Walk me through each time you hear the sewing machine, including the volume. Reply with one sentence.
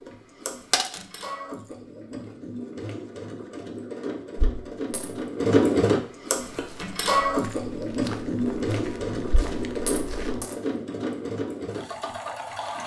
The sewing machine can be heard from 0.0 to 12.8 s, getting louder then quieter.